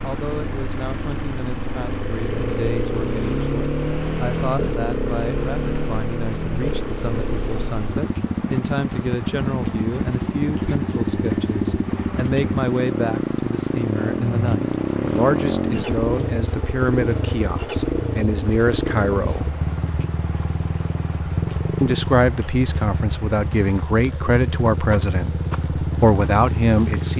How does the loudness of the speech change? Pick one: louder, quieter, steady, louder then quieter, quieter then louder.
louder.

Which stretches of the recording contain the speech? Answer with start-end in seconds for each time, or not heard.
0.0-19.5, 21.8-27.1.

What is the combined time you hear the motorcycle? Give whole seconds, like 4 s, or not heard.
27 s.